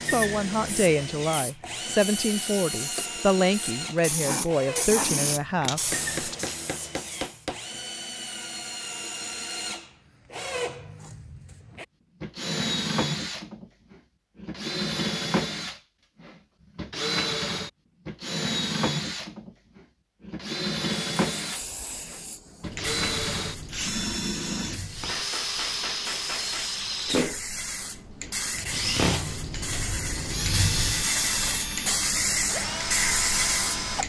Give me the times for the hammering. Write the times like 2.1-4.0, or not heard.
5.6-7.6, 25.1-26.7.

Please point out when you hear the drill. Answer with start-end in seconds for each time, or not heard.
0.0-34.0.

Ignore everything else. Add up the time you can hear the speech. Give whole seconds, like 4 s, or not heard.
6 s.